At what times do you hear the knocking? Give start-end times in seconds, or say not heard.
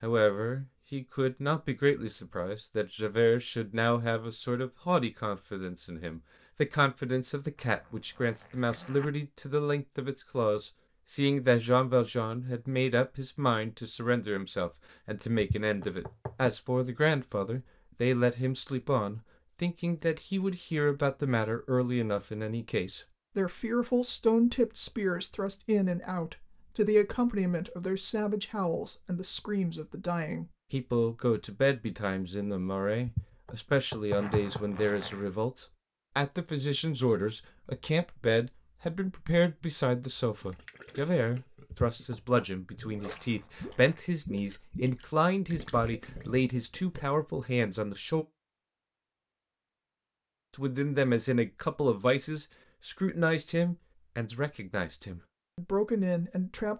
15.4-16.5, 33.0-34.6, 41.7-42.1.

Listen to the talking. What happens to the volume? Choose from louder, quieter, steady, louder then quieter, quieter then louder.
steady.